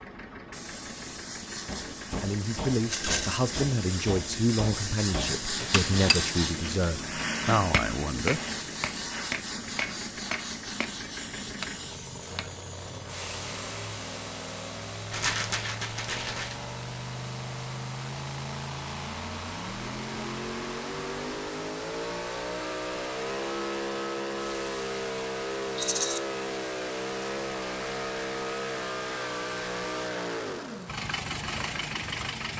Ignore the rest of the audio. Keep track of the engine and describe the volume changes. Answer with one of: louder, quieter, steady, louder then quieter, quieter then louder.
louder.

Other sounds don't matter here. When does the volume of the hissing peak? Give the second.
6 s.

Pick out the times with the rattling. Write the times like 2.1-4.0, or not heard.
2.9-3.5, 15.1-16.6, 25.8-26.2.